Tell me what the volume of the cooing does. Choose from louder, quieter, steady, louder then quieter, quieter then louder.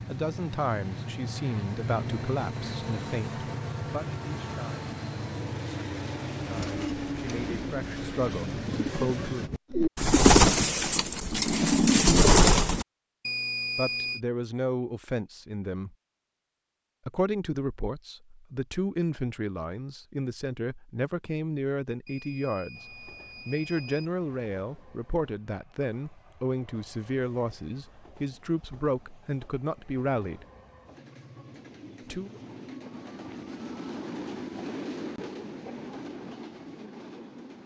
louder.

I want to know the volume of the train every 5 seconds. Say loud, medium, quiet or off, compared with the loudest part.
loud, loud, off, off, quiet, quiet, medium, medium.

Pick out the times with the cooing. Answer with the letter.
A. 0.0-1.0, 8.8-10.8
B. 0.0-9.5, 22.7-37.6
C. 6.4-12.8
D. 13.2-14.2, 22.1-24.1
C.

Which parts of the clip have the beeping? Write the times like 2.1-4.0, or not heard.
13.2-14.2, 22.1-24.1.